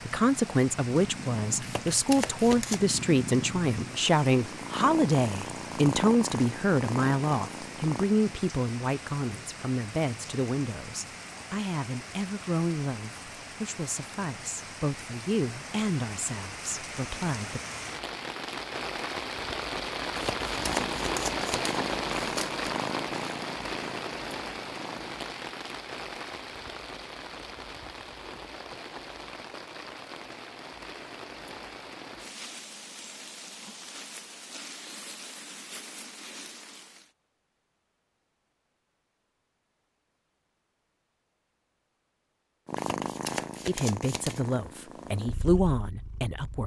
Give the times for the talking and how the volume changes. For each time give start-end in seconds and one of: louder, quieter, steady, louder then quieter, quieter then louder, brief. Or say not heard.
0.1-17.6 quieter
43.6-46.6 brief.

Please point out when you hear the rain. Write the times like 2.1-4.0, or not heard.
0.0-37.1.